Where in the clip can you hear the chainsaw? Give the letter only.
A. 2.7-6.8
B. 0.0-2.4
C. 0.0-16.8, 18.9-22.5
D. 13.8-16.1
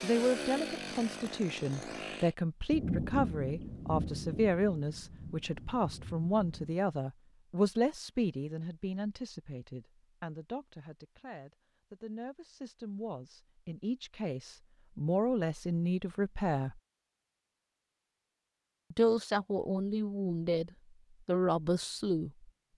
B.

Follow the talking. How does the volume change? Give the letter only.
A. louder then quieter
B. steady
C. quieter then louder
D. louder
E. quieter
C.